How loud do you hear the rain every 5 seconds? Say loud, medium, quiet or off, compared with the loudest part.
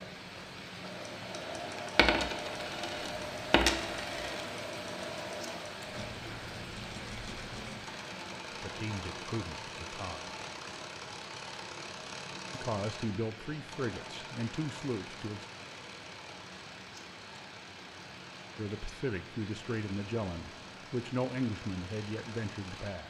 loud, loud, medium, medium, medium.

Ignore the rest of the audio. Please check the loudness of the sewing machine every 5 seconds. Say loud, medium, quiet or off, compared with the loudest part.
loud, loud, loud, medium, medium.